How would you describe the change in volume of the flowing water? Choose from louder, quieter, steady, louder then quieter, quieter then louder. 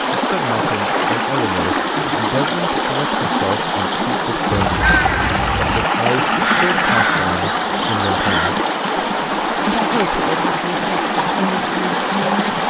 steady.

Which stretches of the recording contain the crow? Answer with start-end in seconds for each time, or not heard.
4.5-8.6.